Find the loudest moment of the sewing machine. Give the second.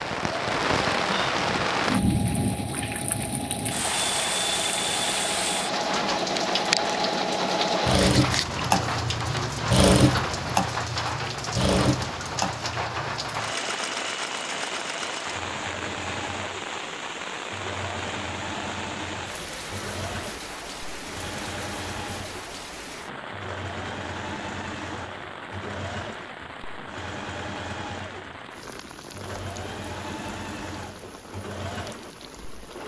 10 s.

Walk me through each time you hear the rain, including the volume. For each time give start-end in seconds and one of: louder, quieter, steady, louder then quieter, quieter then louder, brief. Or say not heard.
0.0-32.8 quieter.